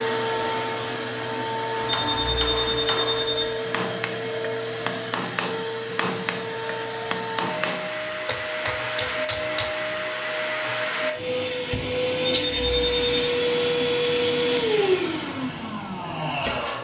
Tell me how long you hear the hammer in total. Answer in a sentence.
You can hear the hammer for 8 seconds altogether.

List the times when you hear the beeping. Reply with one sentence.
You can hear the beeping from 1.9 to 3.5 s and from 12.2 to 13.3 s.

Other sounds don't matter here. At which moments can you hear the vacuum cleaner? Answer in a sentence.
The vacuum cleaner can be heard from 0.0 to 16.7 s.